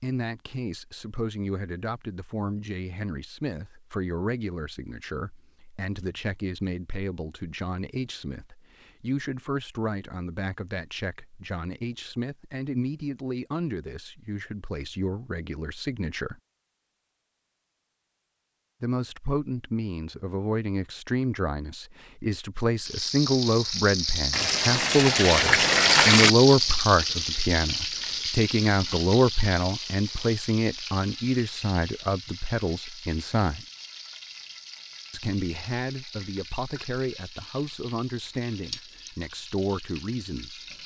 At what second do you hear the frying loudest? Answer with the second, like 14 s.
26 s.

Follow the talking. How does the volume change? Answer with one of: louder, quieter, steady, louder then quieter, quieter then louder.
louder then quieter.